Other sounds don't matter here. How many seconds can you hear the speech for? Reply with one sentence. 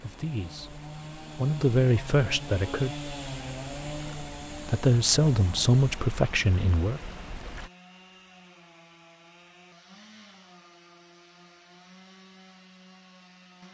You can hear the speech for 5 seconds altogether.